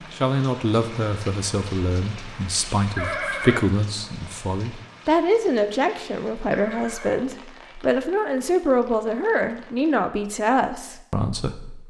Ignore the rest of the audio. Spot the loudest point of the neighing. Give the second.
3 s.